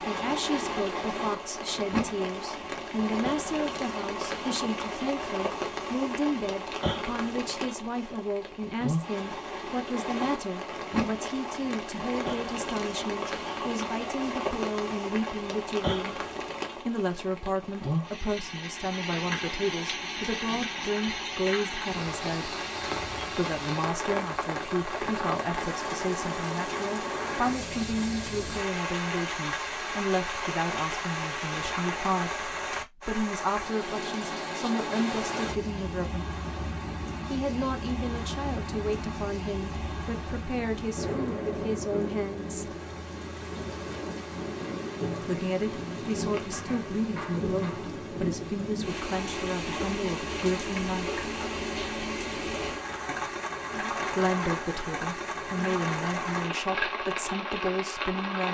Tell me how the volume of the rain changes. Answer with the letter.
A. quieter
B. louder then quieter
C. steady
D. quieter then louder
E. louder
C.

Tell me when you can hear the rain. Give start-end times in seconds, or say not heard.
0.0-58.5.